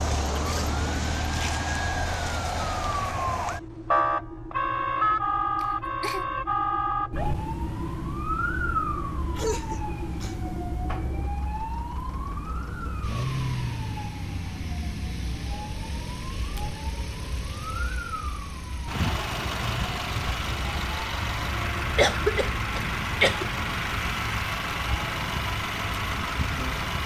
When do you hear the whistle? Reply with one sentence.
The whistle can't be heard in this clip.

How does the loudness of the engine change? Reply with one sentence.
The loudness of the engine goes up.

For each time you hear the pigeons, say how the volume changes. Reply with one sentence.
The pigeons can't be heard in this clip.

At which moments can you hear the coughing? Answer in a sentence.
You can hear the coughing from 5.5 to 6.2 s, from 9.3 to 10.5 s and from 21.9 to 23.4 s.